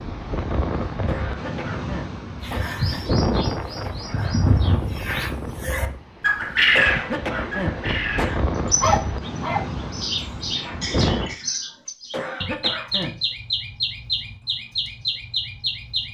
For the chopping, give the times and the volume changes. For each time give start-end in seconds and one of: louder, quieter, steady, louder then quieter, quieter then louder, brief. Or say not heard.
not heard.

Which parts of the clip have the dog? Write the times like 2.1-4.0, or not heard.
8.8-10.2.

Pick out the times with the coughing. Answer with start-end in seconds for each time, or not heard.
1.1-3.0, 6.8-8.4, 12.1-13.2.